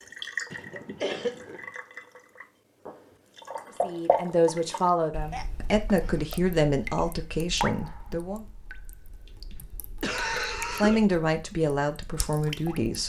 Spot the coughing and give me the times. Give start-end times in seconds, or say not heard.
0.5-1.6, 5.3-6.5, 9.2-11.0.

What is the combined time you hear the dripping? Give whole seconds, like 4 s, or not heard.
13 s.